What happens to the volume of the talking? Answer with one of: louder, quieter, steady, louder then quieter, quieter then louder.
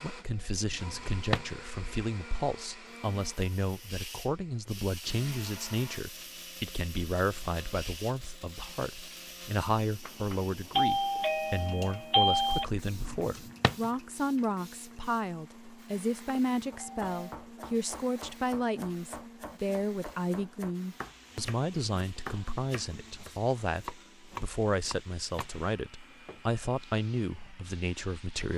steady.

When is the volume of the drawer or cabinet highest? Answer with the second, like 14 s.
1 s.